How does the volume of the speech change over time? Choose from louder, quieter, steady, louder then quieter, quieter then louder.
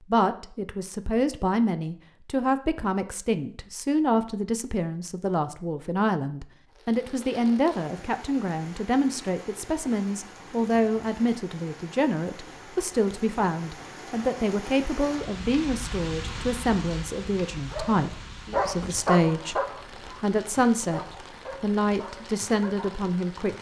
steady.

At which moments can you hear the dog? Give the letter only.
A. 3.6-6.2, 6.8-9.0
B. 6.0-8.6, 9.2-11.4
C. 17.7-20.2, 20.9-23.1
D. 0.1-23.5
C.